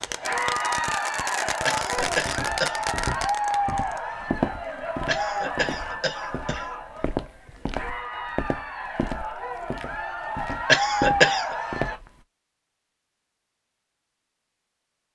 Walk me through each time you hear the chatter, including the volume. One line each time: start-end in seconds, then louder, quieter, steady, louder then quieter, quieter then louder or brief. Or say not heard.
0.1-12.0 quieter then louder.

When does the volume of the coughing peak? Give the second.
11 s.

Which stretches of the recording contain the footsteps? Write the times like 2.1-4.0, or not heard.
2.1-12.1.